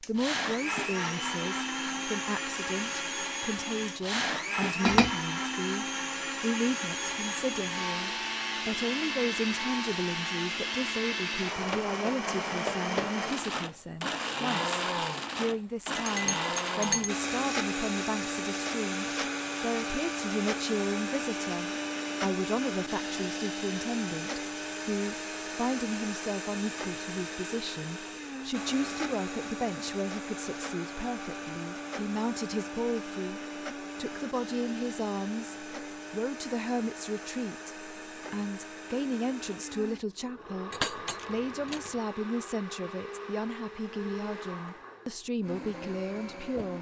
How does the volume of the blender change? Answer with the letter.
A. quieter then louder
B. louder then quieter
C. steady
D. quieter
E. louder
D.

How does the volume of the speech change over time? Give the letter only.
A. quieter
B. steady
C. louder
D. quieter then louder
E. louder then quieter
B.